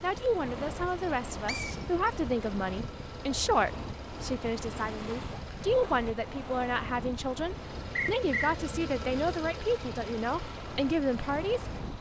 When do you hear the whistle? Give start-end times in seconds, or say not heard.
1.4-2.1, 8.0-8.6.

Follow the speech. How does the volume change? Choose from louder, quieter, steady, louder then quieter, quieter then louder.
steady.